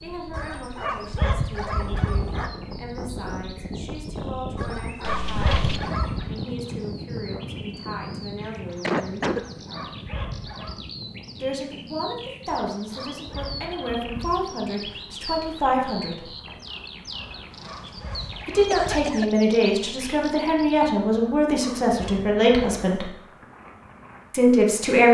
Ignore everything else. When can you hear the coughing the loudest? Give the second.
9 s.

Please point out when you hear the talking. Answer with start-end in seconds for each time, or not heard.
0.0-9.2, 11.4-16.3, 18.4-23.1, 24.3-25.0.